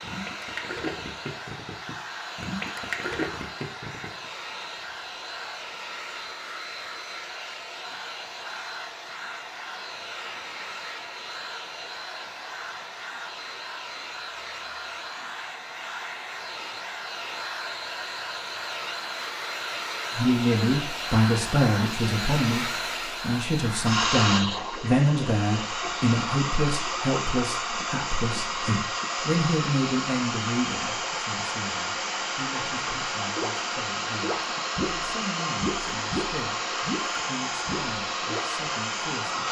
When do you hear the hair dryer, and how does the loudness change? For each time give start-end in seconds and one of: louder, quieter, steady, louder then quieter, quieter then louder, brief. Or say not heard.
0.0-39.4 louder.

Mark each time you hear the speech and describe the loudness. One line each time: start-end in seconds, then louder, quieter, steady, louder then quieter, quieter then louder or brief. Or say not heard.
20.1-39.4 quieter.